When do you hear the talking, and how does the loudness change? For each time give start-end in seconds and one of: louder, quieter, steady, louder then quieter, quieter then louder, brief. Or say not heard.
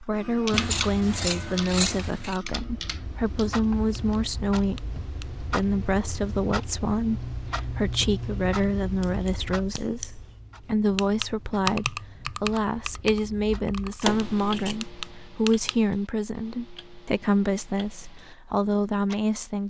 0.0-19.6 steady.